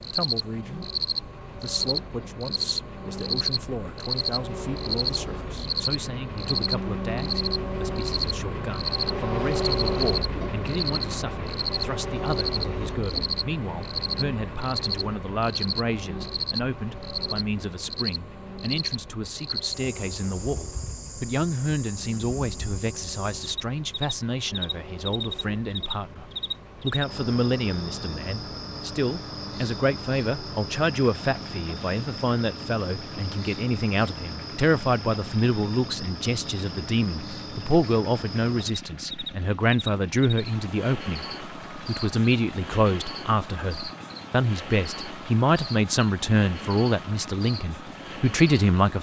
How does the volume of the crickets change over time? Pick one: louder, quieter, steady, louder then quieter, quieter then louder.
quieter.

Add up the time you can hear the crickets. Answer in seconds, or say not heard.
49 s.